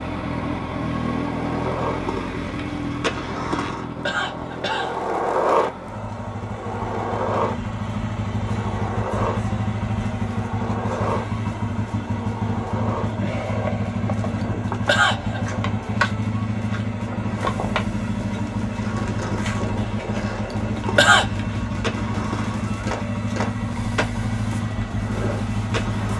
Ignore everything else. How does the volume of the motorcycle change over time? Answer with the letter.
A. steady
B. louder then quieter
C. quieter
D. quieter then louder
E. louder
A.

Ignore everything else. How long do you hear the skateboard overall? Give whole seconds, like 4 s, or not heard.
26 s.